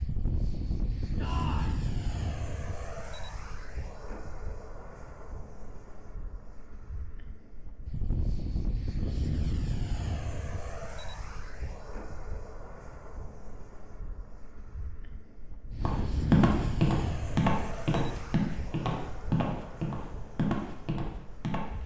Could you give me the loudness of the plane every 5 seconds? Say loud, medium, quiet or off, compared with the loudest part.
loud, loud, medium, loud, quiet.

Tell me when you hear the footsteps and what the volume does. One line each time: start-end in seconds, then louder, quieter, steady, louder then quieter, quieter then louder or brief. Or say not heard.
15.8-21.8 quieter.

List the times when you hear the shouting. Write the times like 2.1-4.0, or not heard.
1.1-1.8.